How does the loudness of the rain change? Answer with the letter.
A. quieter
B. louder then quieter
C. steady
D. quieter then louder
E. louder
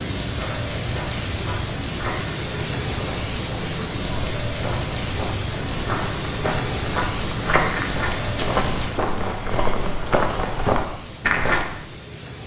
A.